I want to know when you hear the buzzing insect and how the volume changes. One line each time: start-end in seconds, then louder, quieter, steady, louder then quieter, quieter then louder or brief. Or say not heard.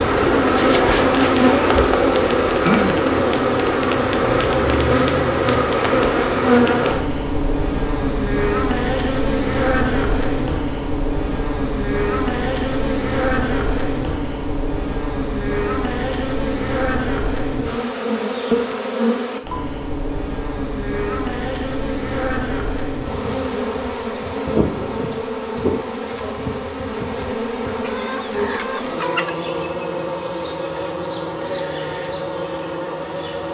0.0-33.4 quieter.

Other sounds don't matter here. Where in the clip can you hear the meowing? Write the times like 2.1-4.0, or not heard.
not heard.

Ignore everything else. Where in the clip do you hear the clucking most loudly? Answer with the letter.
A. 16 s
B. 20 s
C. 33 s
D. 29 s
D.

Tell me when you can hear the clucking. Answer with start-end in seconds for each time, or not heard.
27.8-29.4.